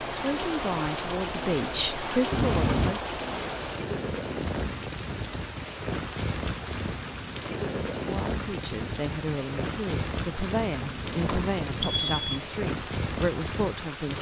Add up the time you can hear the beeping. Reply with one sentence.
The beeping can be heard for 3 seconds in total.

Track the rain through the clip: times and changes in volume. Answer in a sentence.
You can hear the rain from 0.0 to 14.1 s, at a steady volume.